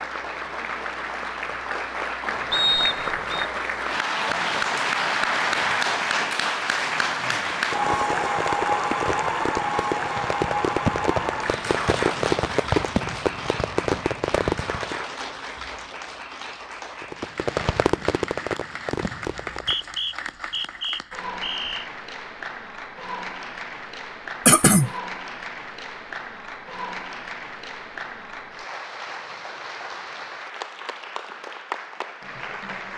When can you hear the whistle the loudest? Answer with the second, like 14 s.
3 s.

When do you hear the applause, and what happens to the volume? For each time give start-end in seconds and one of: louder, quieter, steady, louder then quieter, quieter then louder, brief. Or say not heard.
0.0-32.9 quieter.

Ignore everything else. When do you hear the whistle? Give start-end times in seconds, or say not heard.
2.5-3.5, 19.4-21.9.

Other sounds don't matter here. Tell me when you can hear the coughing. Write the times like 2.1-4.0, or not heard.
24.4-24.9.